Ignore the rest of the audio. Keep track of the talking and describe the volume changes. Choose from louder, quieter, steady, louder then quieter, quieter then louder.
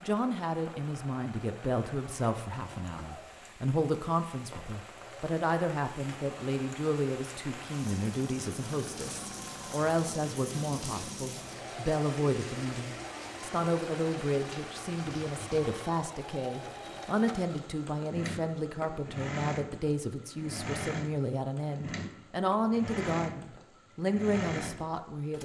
steady.